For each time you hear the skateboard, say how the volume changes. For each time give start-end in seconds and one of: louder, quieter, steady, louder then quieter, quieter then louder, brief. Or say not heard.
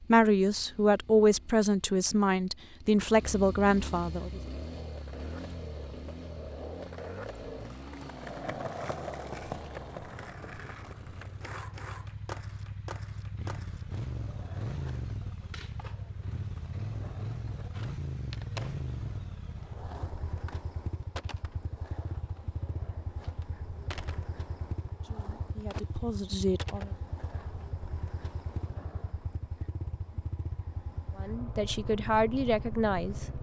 4.2-29.3 quieter.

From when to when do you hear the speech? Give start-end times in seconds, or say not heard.
0.0-4.4, 25.0-26.9, 31.1-33.2.